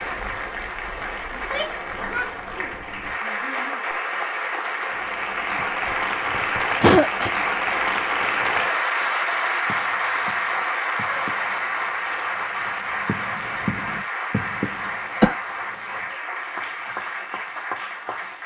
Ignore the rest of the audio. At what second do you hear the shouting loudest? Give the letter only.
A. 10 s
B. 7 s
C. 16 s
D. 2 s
D.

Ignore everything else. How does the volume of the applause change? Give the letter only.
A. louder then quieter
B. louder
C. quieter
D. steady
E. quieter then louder
A.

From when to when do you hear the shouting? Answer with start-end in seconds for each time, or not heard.
1.3-3.8.